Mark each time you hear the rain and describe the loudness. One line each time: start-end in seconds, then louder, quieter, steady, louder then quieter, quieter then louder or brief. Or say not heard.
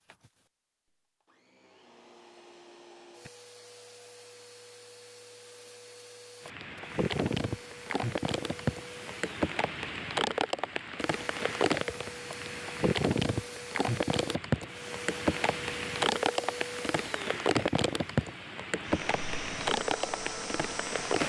6.5-21.2 steady.